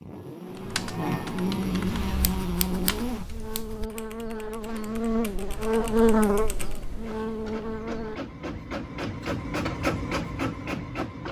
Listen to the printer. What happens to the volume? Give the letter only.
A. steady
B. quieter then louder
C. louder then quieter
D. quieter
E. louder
E.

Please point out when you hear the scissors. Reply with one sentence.
The scissors can be heard from 2.0 to 3.9 s.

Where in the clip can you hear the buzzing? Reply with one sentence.
The buzzing can be heard from 0.0 to 8.2 s.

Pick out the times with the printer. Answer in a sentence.
You can hear the printer from 4.6 to 11.2 s.